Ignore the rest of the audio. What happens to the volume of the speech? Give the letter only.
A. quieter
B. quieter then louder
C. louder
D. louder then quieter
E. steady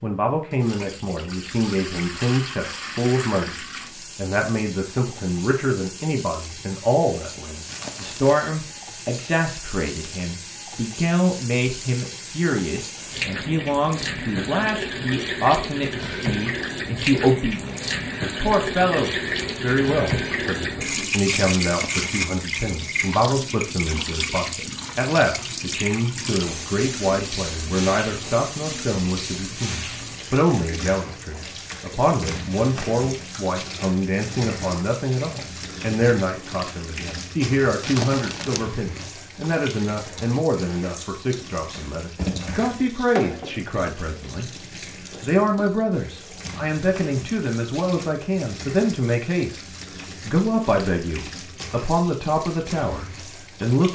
E.